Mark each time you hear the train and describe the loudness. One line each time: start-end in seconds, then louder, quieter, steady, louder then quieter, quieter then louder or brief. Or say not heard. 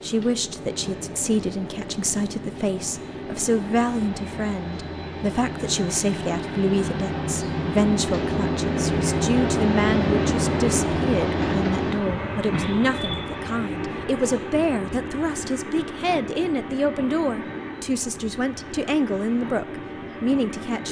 0.0-20.8 louder then quieter.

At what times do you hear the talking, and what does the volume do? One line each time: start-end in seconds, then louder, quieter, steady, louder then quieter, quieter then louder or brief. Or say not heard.
0.0-20.8 steady.